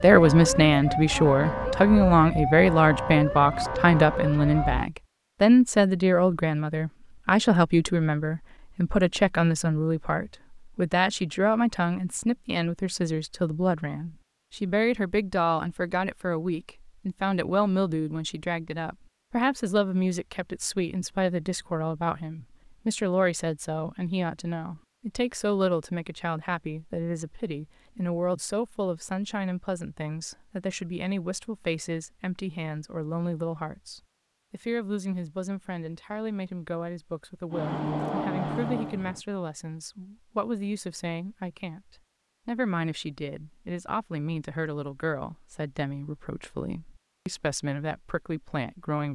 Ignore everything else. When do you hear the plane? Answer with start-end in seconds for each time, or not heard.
37.5-39.2.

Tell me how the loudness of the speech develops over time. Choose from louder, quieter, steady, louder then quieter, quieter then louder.
quieter.